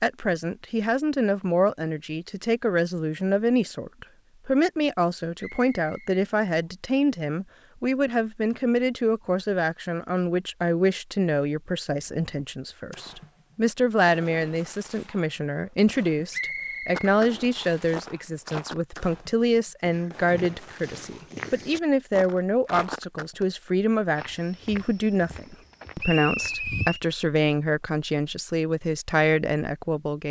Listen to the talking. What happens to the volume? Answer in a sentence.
The volume of the talking stays about the same.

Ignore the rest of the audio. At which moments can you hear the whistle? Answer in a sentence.
You can hear the whistle from 5.3 to 6.2 s, from 16.3 to 17.8 s and from 25.9 to 27.0 s.